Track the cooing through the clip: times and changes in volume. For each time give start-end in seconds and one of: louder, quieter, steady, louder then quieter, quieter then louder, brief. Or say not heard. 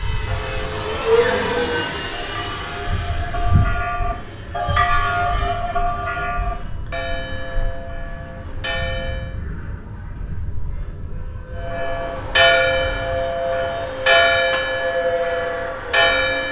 not heard.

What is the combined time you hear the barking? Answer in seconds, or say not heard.
not heard.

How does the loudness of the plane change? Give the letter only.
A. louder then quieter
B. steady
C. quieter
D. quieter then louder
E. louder
D.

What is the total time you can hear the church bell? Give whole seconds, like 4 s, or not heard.
14 s.